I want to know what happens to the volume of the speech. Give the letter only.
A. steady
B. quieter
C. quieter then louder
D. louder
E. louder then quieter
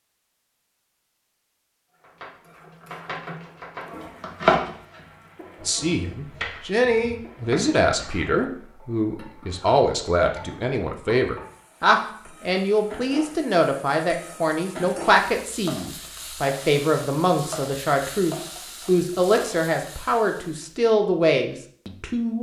A.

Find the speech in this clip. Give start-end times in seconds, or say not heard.
5.7-22.3.